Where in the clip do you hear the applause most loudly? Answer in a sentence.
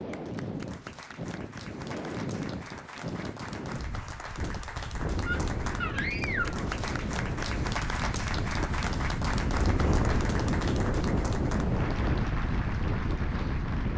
The loudest moment of the applause is at 8 seconds.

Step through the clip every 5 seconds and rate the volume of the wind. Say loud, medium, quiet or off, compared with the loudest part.
medium, loud, loud.